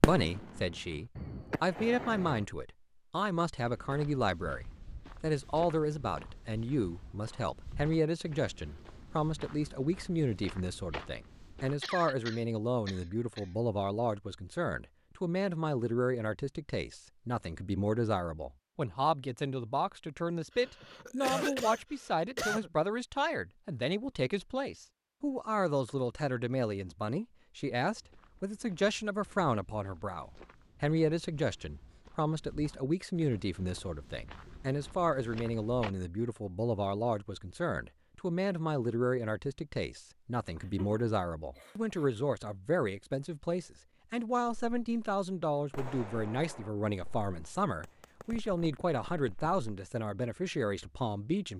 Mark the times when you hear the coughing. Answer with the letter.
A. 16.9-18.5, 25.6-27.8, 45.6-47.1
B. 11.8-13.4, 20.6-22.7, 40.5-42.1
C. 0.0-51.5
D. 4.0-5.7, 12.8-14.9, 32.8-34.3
B.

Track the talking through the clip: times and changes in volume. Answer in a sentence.
The talking can be heard from 0.0 to 51.5 s, at a steady volume.